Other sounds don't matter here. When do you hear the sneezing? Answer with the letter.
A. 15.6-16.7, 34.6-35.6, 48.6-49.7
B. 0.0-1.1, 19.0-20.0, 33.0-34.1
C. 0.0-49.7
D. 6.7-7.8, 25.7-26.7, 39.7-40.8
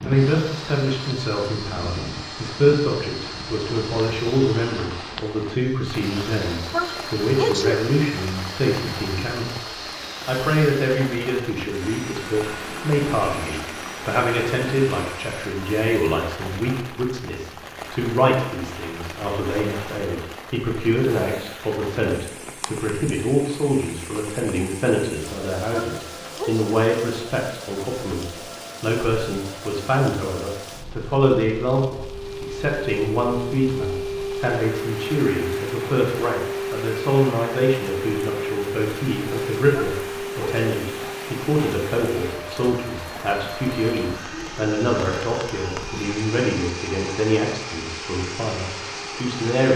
D.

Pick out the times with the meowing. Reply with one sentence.
You can't hear the meowing here.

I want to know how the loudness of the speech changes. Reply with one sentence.
The volume of the speech stays about the same.